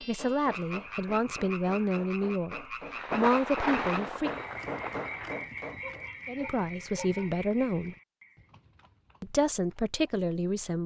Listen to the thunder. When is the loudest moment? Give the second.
4 s.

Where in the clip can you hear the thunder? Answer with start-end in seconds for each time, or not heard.
3.0-5.4.